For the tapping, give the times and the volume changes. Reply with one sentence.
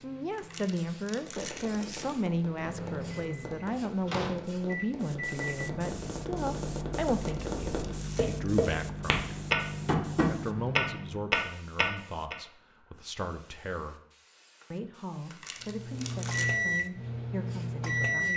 You can hear the tapping from 1.1 to 12.3 s, getting louder.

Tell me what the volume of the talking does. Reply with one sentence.
The loudness of the talking goes down.